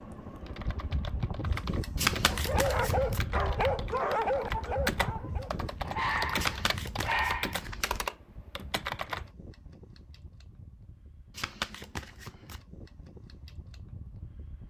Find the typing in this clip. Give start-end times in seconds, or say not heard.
0.5-9.2.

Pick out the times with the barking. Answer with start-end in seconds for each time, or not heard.
2.1-7.6.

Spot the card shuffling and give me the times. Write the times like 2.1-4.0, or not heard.
1.9-3.2, 6.3-8.1, 11.3-12.6.